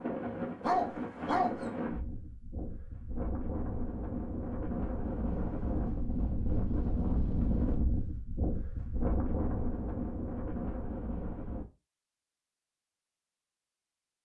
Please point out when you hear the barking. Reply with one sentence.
You can hear the barking from 0.6 to 1.6 s.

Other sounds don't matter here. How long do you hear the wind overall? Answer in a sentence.
The wind can be heard for 12 seconds in total.